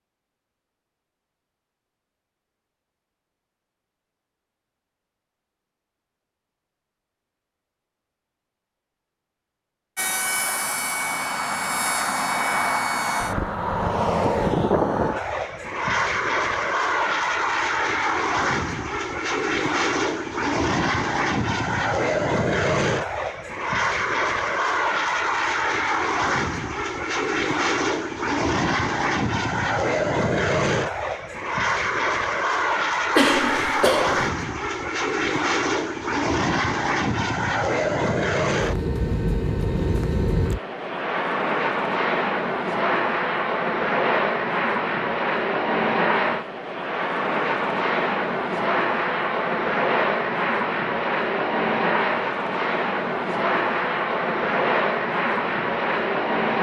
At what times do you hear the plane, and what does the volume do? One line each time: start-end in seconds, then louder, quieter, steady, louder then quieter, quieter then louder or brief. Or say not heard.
9.9-56.5 steady.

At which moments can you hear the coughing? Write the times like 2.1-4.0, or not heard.
33.1-34.3.